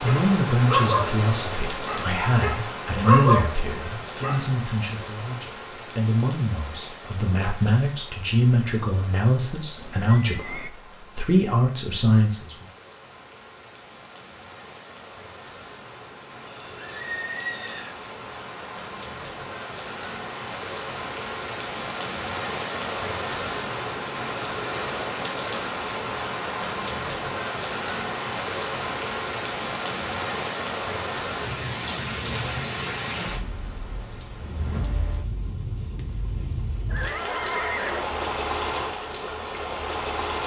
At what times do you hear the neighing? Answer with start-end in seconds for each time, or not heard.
9.8-10.7, 16.4-17.9, 36.9-38.4.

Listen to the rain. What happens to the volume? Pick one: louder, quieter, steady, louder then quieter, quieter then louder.
quieter then louder.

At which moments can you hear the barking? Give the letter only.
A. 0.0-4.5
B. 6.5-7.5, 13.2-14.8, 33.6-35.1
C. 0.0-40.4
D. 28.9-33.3
A.